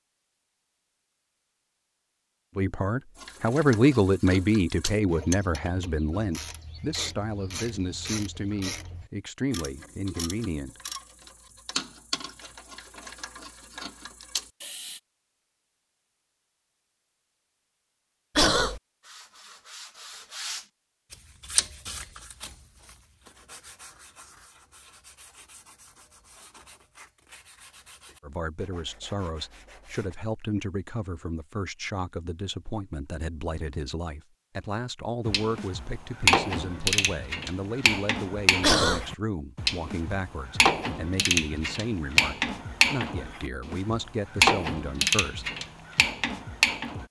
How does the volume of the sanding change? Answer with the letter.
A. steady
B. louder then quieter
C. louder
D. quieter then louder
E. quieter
E.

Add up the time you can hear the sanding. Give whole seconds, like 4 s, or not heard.
11 s.